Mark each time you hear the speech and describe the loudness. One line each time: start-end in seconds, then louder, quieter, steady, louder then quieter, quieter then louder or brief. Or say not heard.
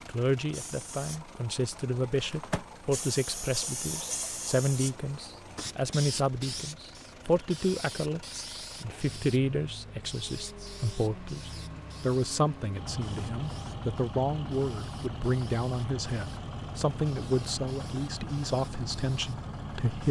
0.1-20.0 steady.